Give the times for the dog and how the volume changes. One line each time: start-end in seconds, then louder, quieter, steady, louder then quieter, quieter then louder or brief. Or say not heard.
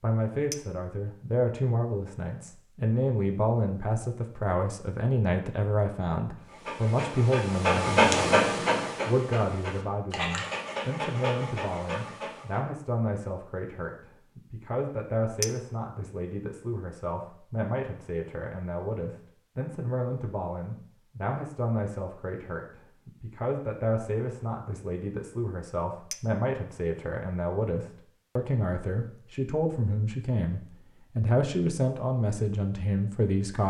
6.5-12.6 louder then quieter.